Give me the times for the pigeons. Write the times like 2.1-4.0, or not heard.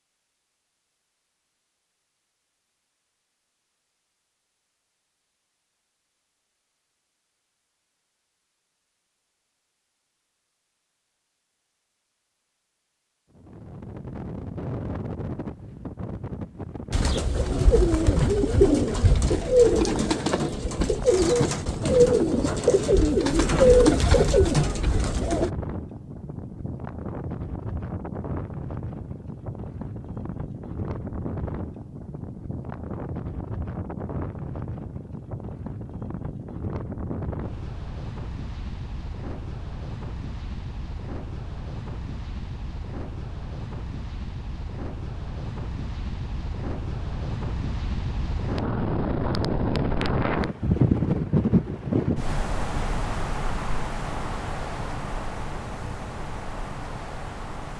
16.9-25.5.